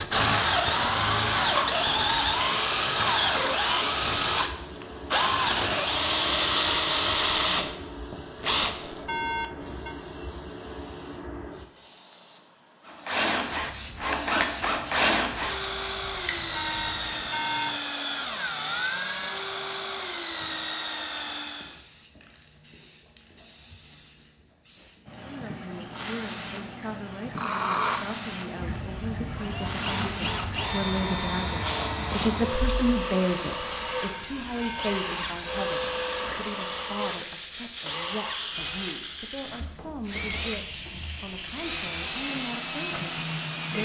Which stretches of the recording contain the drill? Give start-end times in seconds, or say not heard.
0.0-9.1, 12.8-21.8, 27.4-43.8.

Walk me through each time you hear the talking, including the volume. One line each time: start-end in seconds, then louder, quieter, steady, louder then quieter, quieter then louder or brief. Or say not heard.
25.2-43.8 louder then quieter.